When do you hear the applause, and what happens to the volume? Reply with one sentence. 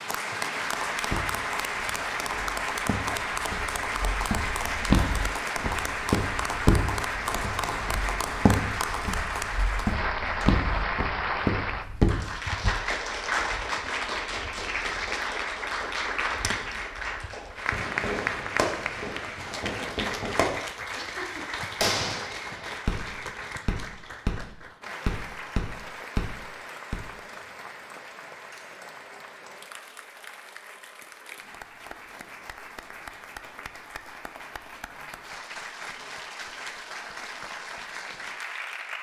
The applause can be heard from 0.0 to 38.9 s, getting quieter.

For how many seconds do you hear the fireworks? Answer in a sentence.
You can hear the fireworks for 9 seconds altogether.